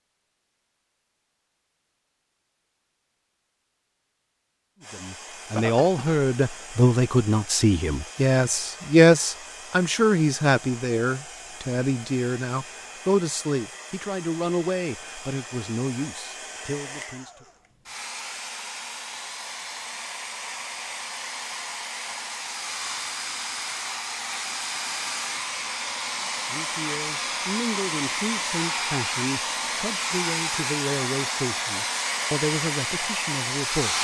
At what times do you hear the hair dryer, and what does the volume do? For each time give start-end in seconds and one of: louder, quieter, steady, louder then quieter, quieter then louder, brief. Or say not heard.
4.8-33.9 louder.